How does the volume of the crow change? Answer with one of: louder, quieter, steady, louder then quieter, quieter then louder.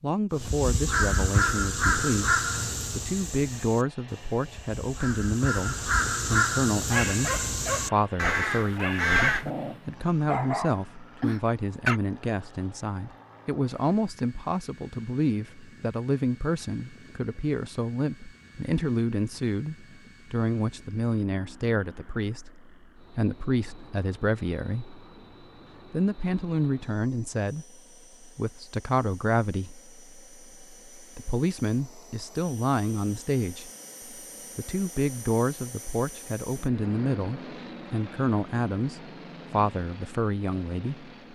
quieter then louder.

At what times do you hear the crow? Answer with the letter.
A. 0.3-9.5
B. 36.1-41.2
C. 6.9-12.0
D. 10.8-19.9
A.